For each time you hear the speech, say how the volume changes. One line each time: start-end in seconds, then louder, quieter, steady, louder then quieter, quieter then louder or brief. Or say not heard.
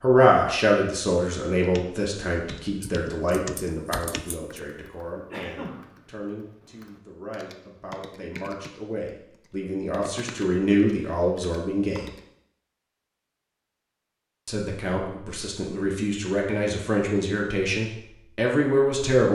0.0-12.1 quieter then louder
14.4-19.3 louder.